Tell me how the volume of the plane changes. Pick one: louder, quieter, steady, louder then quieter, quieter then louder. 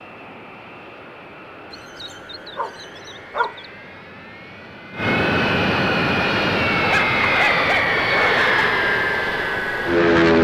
louder.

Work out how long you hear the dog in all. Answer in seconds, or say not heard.
4 s.